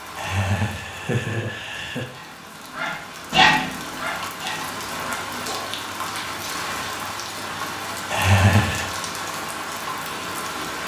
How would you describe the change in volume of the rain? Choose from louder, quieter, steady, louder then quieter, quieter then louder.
louder.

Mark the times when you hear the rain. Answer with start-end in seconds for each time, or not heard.
0.0-10.8.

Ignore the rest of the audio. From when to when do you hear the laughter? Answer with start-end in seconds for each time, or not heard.
0.1-2.0, 8.1-8.9.